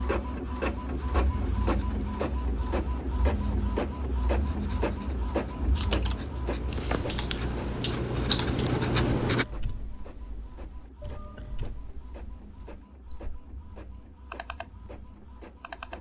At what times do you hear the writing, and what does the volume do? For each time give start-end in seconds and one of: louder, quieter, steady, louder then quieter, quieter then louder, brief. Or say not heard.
0.8-9.4 louder.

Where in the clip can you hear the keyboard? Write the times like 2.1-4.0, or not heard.
5.8-15.9.